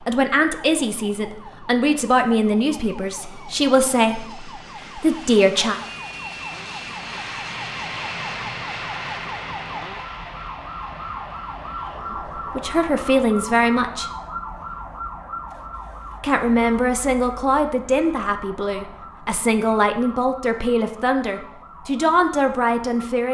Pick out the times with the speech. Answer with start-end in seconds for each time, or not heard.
0.1-5.8, 12.6-14.1, 16.2-23.2.